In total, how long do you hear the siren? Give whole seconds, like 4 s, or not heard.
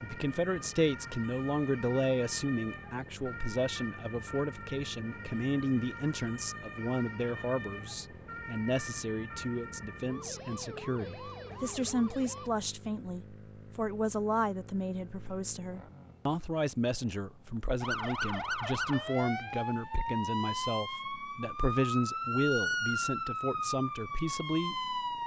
20 s.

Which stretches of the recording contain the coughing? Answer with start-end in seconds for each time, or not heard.
not heard.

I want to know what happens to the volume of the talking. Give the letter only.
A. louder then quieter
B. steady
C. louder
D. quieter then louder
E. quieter
B.